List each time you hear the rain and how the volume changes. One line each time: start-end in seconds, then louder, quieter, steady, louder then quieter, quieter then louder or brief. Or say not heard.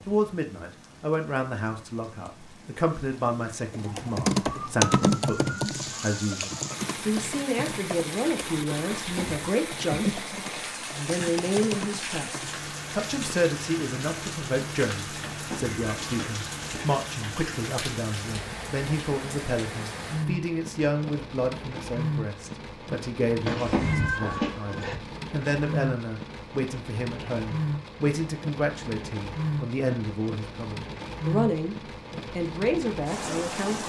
0.0-33.8 louder.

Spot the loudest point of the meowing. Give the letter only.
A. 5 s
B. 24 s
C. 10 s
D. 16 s
B.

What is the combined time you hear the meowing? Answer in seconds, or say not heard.
4 s.